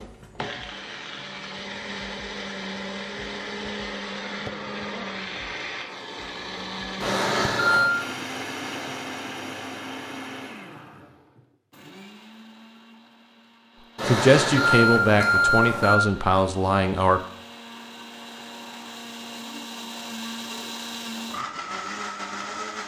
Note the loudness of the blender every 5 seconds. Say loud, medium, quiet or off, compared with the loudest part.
loud, loud, medium, medium, loud.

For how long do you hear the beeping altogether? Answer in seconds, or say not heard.
3 s.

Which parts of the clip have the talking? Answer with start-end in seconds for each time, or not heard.
14.1-17.2.